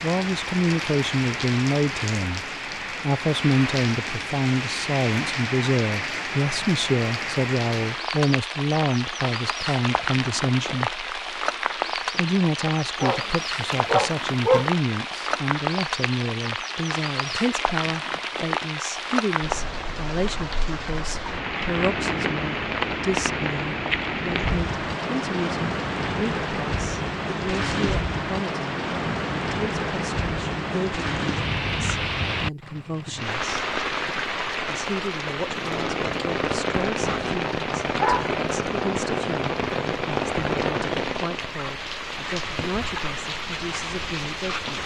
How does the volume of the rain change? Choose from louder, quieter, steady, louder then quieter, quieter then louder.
steady.